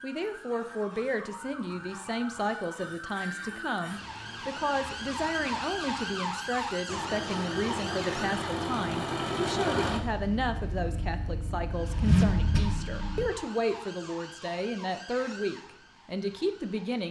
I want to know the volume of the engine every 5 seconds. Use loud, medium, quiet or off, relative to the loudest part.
off, loud, loud, off.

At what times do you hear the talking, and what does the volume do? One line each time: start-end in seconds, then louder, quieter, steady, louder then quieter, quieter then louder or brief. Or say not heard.
0.0-17.0 steady.